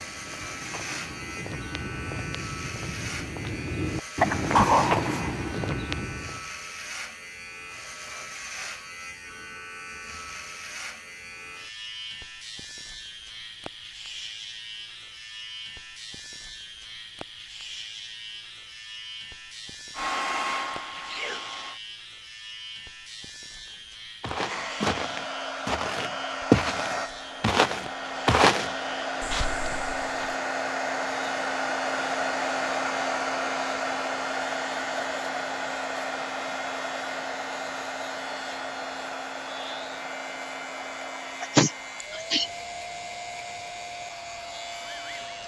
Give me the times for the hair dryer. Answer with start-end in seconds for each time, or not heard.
19.9-21.8, 24.4-45.4.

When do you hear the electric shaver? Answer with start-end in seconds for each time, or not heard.
0.0-45.4.